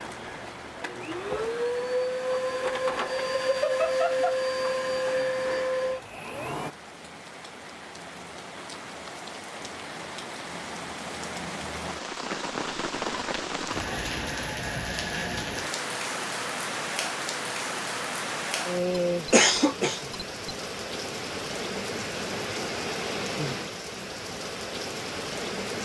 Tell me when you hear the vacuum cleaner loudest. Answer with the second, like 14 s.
4 s.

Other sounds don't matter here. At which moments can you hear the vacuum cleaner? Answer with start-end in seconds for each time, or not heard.
0.0-6.8.